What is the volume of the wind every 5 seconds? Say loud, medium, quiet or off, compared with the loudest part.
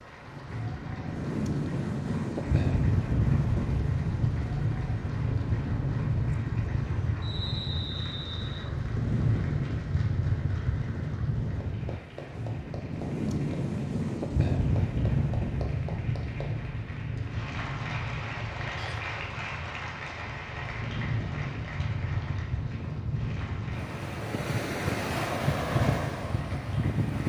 loud, loud, loud, medium, medium, loud.